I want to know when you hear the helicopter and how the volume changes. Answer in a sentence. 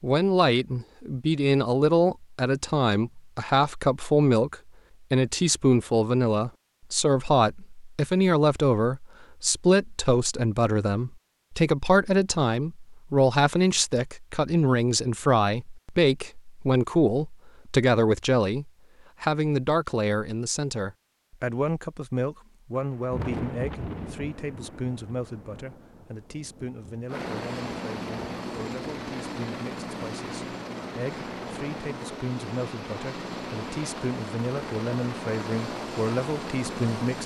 The helicopter can be heard from 27.1 to 37.2 s, at a steady volume.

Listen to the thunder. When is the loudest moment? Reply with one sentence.
The volume of the thunder peaks at 23 seconds.